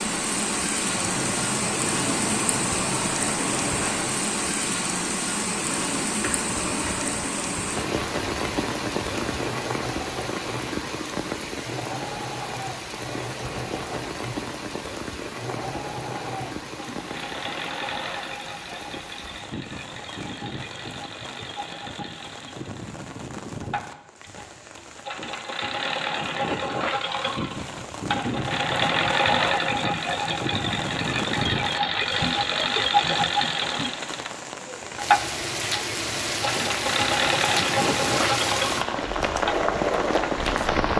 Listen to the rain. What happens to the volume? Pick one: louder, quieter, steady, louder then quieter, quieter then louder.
quieter then louder.